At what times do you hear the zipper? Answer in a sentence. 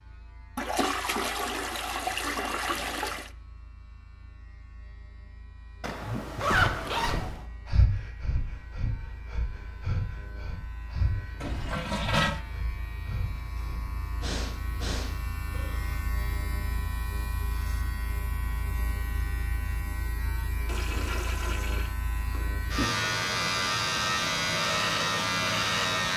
You can hear the zipper from 5.8 to 7.5 s.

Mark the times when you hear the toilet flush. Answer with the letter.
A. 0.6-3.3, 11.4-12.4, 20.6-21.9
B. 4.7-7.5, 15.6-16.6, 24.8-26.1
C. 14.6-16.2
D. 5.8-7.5
A.